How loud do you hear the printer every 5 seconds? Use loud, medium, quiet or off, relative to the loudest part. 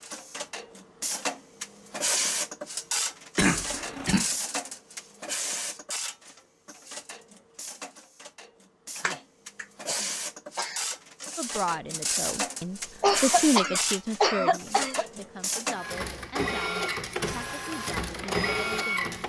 loud, medium, loud, loud.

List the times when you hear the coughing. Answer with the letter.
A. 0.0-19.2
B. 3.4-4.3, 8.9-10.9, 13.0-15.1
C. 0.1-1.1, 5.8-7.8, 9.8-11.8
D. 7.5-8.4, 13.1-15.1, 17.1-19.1
B.